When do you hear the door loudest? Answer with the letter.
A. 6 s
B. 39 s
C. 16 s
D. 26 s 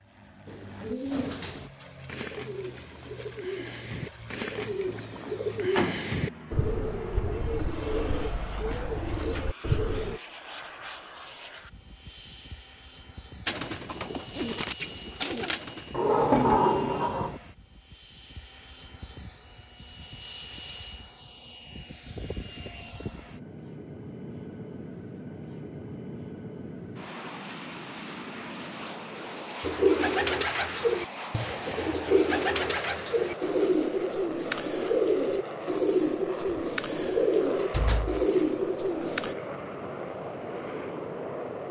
C.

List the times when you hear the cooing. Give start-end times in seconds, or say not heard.
0.5-10.2, 13.4-15.9, 29.6-39.4.